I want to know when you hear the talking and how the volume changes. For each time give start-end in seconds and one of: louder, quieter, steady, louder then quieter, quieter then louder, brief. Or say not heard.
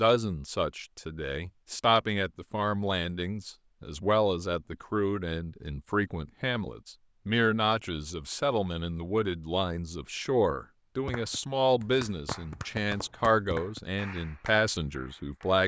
0.0-15.6 steady.